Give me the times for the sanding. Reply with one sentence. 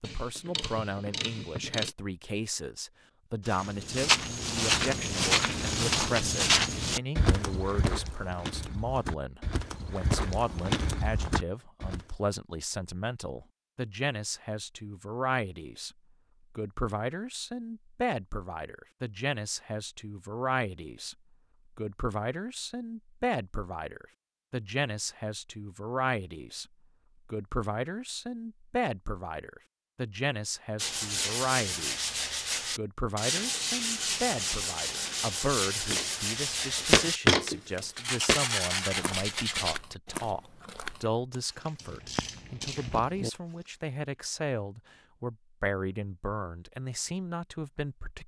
The sanding can be heard from 30.8 to 39.8 s.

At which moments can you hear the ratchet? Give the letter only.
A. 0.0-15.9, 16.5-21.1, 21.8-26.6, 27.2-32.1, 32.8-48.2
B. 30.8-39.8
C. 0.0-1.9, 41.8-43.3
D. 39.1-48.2
C.